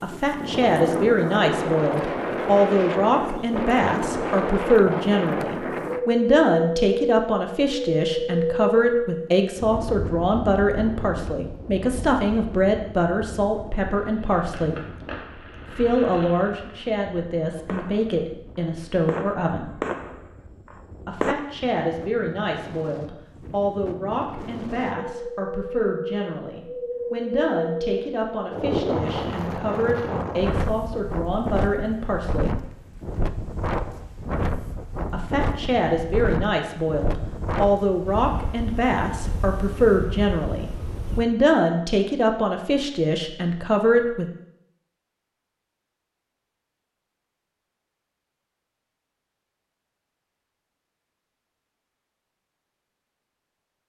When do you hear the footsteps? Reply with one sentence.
The footsteps can't be heard in this clip.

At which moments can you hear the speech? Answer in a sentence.
The speech can be heard from 0.0 to 14.9 s, from 15.7 to 19.7 s, from 21.1 to 32.6 s and from 35.1 to 44.2 s.